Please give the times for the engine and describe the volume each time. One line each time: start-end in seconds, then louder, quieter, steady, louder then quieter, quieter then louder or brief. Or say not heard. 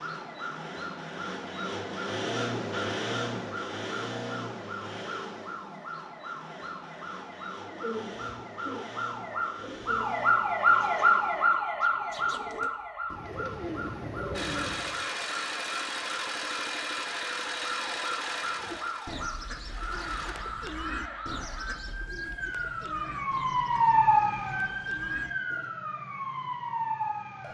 0.0-11.5 quieter
14.3-20.4 quieter.